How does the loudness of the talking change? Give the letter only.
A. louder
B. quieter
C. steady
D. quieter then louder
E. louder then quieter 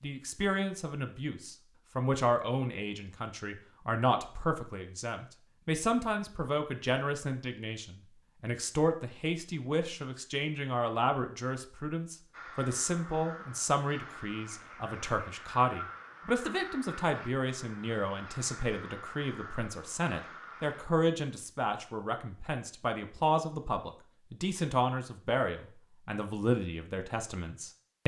C.